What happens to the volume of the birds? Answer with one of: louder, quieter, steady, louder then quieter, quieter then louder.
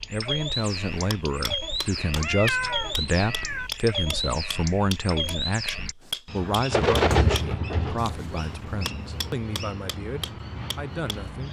louder then quieter.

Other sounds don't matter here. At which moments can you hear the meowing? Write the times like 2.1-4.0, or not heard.
2.2-3.7.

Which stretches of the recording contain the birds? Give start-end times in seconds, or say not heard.
0.0-11.4.